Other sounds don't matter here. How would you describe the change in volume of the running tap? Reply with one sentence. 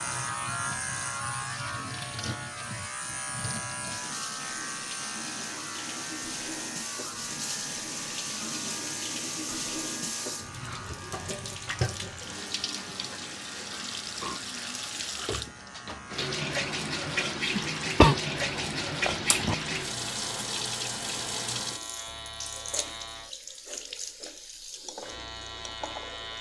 The volume of the running tap goes up, then down.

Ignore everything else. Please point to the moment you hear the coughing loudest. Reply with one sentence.
The loudest moment of the coughing is at 18 seconds.